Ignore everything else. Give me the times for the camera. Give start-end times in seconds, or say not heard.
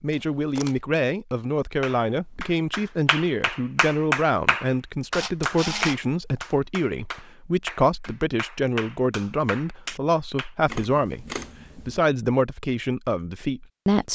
0.1-0.8, 5.1-6.4, 10.7-12.0.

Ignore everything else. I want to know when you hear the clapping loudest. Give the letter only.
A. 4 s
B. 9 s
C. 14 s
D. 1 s
A.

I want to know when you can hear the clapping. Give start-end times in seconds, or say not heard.
1.8-10.5.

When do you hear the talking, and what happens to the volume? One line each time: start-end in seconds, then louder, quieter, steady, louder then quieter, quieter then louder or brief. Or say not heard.
0.0-14.1 steady.